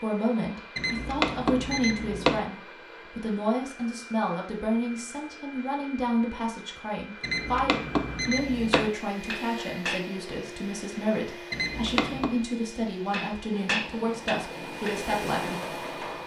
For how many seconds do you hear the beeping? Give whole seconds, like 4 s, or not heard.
4 s.